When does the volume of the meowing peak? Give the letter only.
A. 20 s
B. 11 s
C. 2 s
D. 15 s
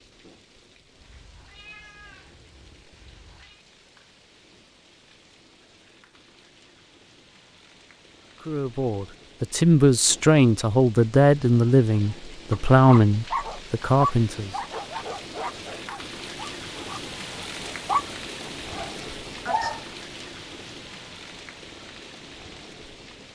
C.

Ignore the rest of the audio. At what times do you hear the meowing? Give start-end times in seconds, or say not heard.
0.9-3.6.